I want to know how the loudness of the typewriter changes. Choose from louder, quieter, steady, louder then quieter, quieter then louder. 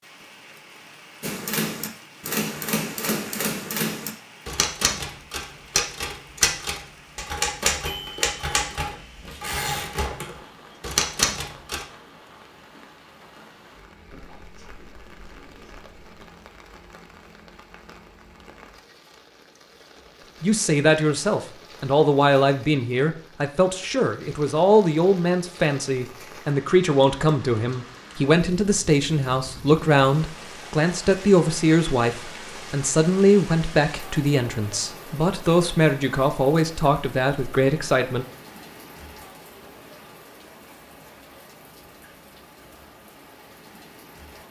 steady.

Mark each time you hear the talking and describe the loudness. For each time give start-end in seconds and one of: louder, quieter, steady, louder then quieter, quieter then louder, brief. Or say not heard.
20.4-38.2 steady.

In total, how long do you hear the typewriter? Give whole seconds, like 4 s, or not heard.
11 s.